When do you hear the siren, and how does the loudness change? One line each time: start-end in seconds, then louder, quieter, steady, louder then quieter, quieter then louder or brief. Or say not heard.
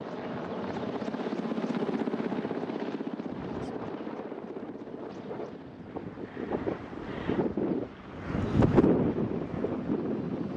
not heard.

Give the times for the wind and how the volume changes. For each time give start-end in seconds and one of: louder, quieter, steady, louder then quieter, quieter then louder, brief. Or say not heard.
3.4-10.5 louder.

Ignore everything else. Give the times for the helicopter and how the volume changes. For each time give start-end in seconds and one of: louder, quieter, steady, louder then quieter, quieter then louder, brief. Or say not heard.
0.0-10.5 quieter.